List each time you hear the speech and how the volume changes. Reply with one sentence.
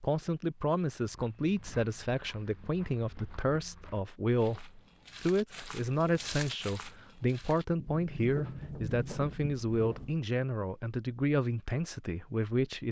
You can hear the speech from 0.0 to 12.8 s, at a steady volume.